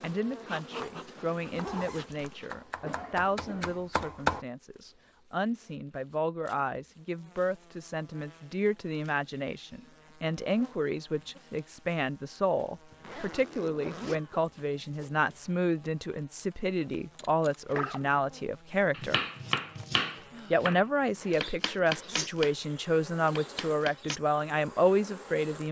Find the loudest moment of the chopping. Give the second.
4 s.